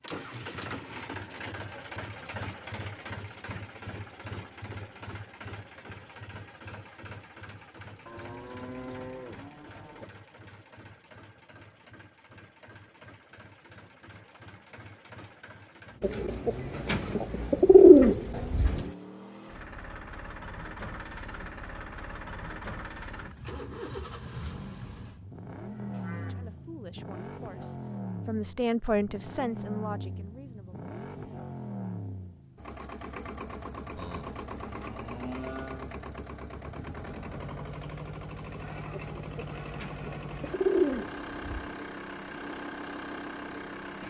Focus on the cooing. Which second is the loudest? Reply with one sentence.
The volume of the cooing peaks at 18 seconds.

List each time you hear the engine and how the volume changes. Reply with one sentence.
The engine can be heard from 0.0 to 44.0 s, getting quieter then louder.